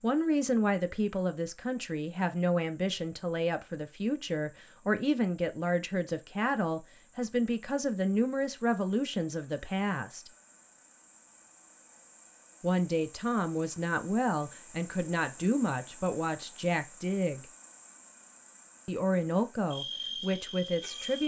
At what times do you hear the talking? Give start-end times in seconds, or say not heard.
0.0-10.3, 12.6-17.4, 18.9-21.2.